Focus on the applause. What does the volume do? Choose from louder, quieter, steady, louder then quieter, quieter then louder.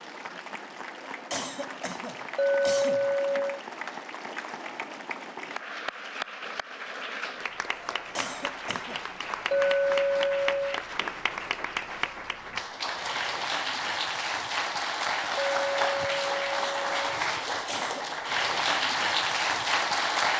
louder.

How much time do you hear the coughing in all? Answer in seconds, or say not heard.
3 s.